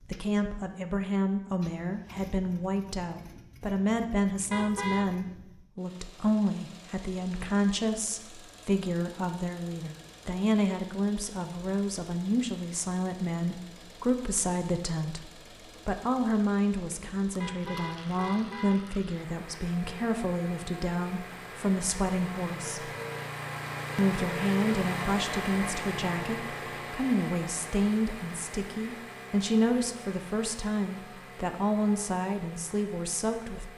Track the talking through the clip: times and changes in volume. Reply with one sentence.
You can hear the talking from 0.1 to 22.9 s, at a steady volume; and from 23.9 to 33.7 s, at a steady volume.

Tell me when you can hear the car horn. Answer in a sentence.
You can hear the car horn from 4.5 to 5.1 s and from 17.4 to 19.1 s.